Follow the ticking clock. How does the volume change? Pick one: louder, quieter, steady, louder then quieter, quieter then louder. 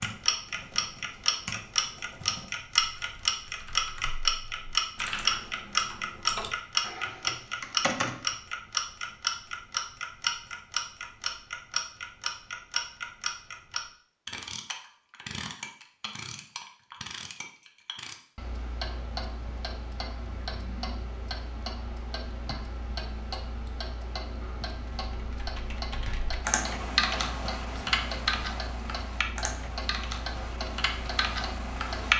quieter.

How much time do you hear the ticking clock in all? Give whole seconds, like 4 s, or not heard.
32 s.